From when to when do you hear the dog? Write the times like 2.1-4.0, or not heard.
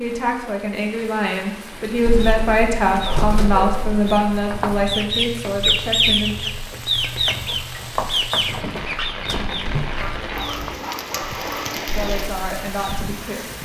3.0-3.8, 9.9-11.8.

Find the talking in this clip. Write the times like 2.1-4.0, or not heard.
0.0-6.3, 11.9-13.5.